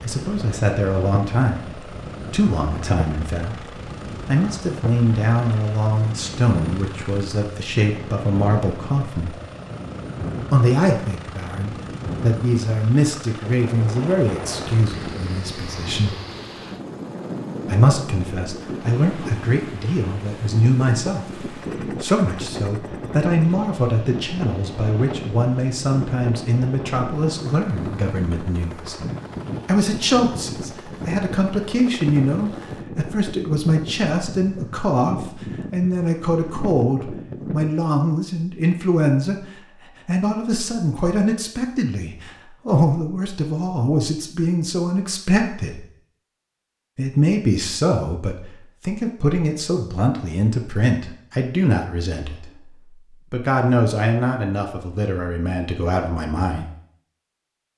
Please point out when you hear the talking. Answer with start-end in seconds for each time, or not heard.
0.0-9.3, 10.5-16.1, 17.6-29.0, 29.6-39.5, 40.0-45.8, 47.0-56.6.